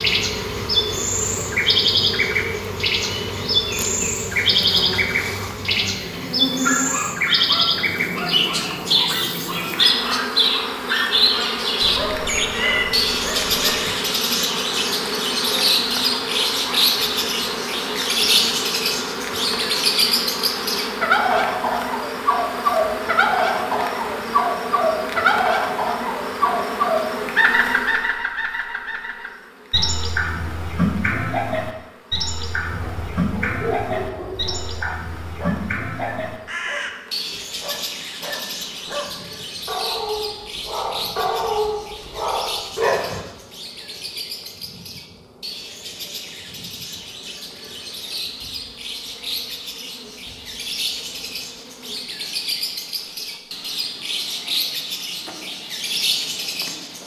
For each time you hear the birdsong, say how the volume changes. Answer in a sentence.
The birdsong can be heard from 0.0 to 57.0 s, getting quieter.